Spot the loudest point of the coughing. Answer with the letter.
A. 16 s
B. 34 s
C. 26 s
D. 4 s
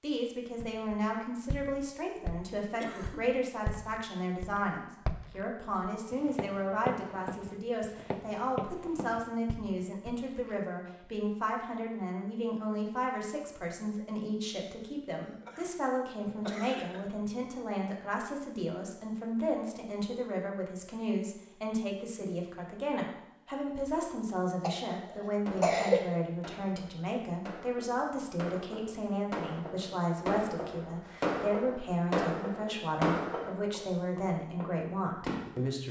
C.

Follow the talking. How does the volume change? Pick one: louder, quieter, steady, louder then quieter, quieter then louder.
steady.